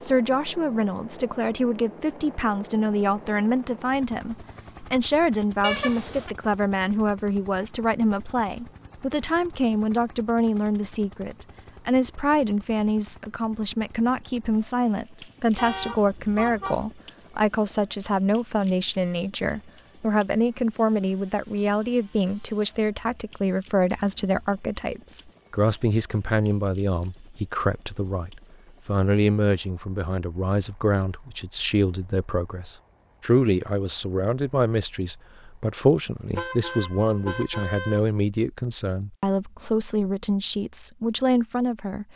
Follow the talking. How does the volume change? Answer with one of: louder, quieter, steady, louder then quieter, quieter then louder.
steady.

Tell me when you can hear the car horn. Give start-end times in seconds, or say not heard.
5.6-6.3, 15.6-16.9, 36.4-38.0.